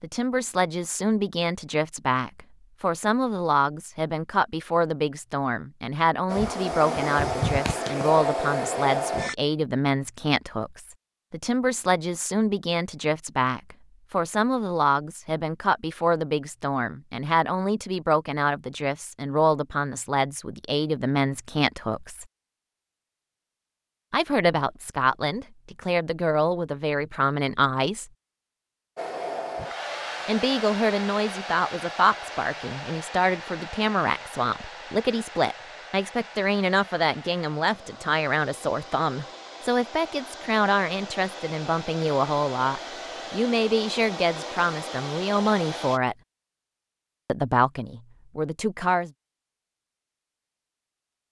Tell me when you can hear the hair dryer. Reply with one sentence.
You can hear the hair dryer from 6.2 to 9.3 s and from 28.9 to 46.0 s.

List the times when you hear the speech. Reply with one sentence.
The speech can be heard from 0.0 to 22.2 s, from 24.1 to 28.1 s, from 30.2 to 46.1 s and from 47.2 to 49.1 s.